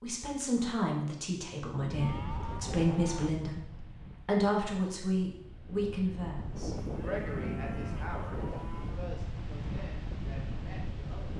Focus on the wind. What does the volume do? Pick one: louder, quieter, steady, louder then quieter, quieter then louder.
quieter then louder.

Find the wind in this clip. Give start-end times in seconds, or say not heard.
1.8-11.3.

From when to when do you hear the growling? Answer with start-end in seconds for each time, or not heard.
not heard.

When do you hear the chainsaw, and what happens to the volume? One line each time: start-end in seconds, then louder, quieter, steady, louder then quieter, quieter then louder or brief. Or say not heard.
not heard.